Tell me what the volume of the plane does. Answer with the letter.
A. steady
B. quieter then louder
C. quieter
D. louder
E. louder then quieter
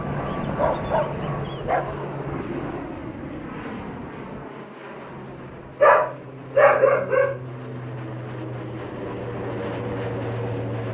B.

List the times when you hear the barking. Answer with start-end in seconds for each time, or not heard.
0.5-2.0, 5.8-7.4.